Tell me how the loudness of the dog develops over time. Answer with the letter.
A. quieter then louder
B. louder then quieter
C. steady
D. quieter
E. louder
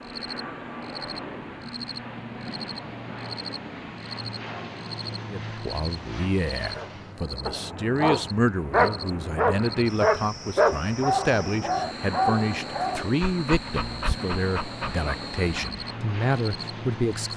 D.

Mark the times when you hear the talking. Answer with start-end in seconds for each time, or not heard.
5.3-17.3.